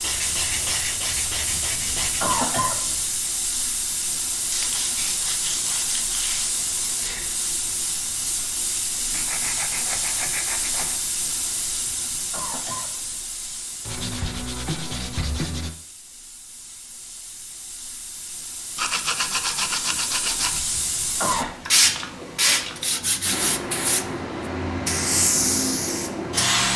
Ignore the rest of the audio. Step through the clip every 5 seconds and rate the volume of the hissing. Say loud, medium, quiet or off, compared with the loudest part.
medium, medium, medium, quiet, loud, loud.